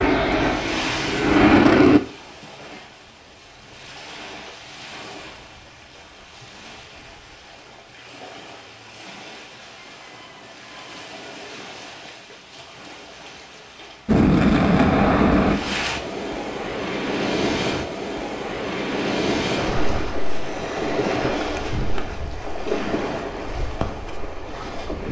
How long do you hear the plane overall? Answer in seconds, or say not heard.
4 s.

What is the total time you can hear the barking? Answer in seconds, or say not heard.
not heard.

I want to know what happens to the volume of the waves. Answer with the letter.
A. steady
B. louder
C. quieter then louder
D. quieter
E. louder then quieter
C.